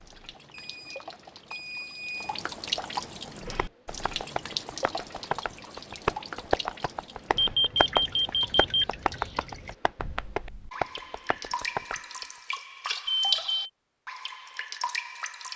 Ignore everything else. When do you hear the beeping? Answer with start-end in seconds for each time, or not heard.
0.5-2.4, 7.3-8.8, 13.1-13.7.